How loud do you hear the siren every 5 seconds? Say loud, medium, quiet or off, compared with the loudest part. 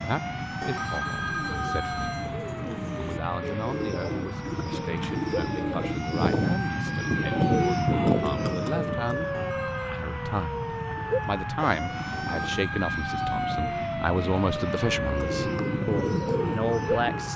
medium, loud, loud, loud.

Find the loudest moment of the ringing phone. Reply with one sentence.
The loudest moment of the ringing phone is at 1 second.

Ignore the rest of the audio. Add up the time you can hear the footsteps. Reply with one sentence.
You can't hear the footsteps here.